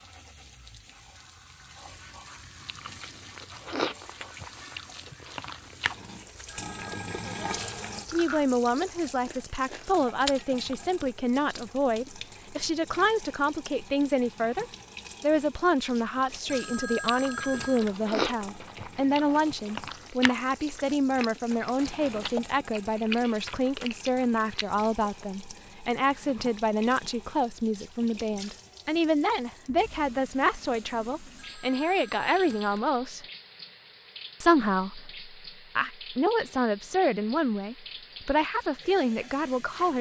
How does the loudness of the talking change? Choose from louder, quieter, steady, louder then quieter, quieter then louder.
steady.